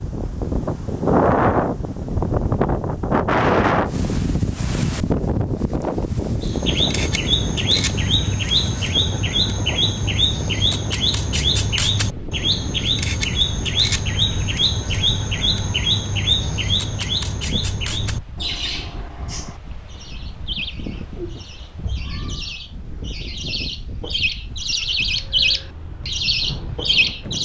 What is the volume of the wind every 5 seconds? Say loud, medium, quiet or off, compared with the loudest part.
loud, medium, quiet, quiet, quiet, quiet.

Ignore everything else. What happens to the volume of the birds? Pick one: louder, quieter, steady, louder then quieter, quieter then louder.
quieter then louder.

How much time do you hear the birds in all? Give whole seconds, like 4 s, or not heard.
21 s.